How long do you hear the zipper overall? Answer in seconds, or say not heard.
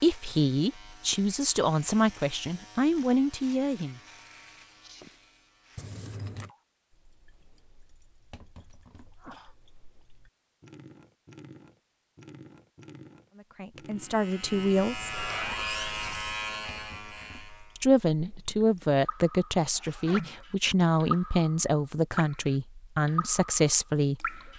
2 s.